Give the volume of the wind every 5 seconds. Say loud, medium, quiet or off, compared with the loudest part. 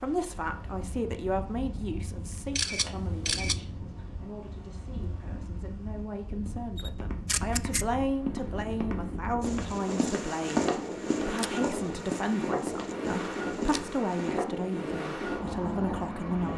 medium, medium, loud, loud.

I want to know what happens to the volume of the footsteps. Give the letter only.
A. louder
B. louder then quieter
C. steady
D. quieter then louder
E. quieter
B.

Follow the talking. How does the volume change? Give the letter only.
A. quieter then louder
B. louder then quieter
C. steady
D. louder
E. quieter
A.